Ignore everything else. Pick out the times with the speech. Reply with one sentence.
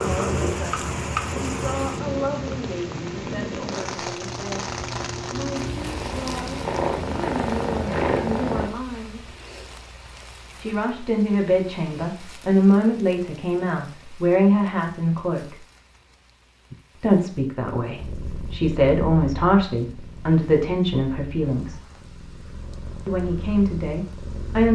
The speech can be heard from 0.0 to 9.2 s, from 10.6 to 15.6 s, from 16.9 to 21.8 s and from 23.1 to 24.6 s.